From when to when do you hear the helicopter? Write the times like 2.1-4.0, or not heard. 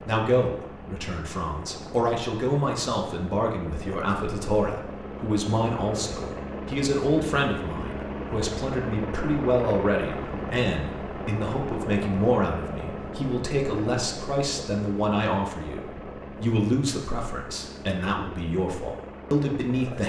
0.0-20.0.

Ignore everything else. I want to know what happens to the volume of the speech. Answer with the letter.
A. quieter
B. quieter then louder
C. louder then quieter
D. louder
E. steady
E.